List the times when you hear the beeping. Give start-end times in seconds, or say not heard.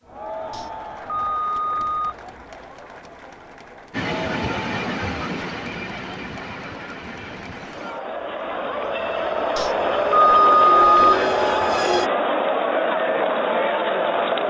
0.5-2.1, 9.6-11.2.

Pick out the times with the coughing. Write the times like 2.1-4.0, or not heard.
not heard.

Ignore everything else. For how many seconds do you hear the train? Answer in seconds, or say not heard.
8 s.